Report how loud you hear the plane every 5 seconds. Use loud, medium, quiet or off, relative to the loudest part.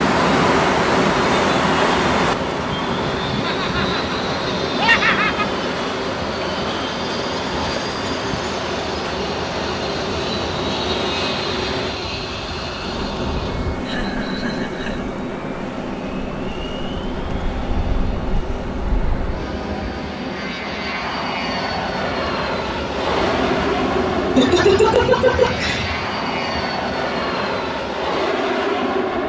medium, medium, medium, medium, loud, loud.